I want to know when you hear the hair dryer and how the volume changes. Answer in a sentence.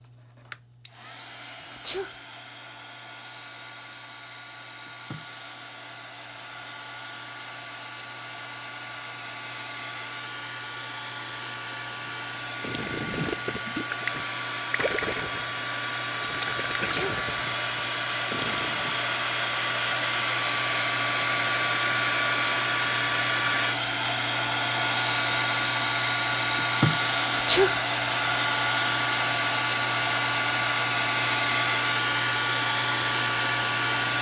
You can hear the hair dryer from 0.0 to 34.1 s, getting louder.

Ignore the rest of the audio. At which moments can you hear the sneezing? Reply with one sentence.
The sneezing can be heard from 1.7 to 2.1 s, from 16.8 to 17.2 s and from 27.3 to 27.8 s.